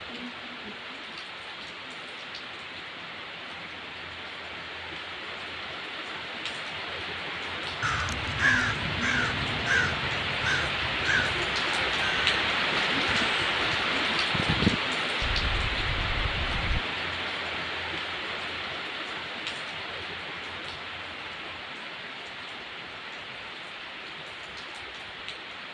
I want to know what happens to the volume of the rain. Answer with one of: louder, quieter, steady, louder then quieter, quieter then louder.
louder then quieter.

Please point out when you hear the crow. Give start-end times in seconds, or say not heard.
7.8-16.8.